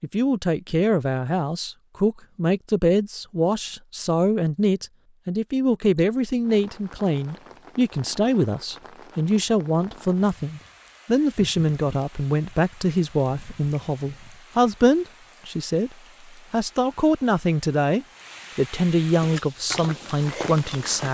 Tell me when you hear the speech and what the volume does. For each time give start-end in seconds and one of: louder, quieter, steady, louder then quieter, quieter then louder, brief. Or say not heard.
0.0-21.0 steady.